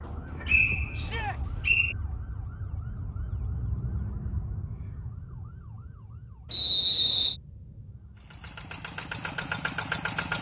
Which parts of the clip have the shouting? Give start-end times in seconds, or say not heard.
0.9-1.4.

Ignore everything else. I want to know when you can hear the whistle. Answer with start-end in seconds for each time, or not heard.
0.1-1.9, 6.5-7.3.